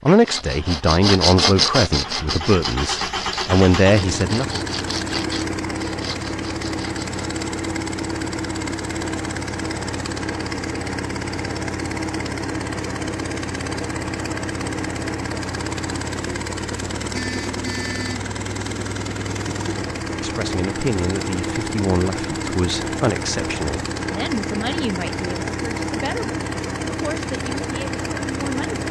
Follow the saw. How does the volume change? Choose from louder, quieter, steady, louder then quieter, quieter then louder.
quieter.